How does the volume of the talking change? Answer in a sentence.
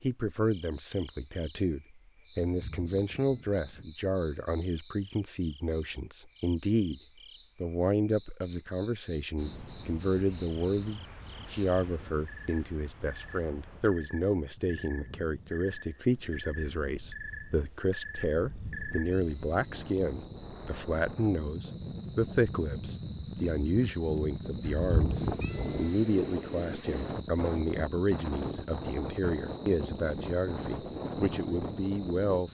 The volume of the talking stays about the same.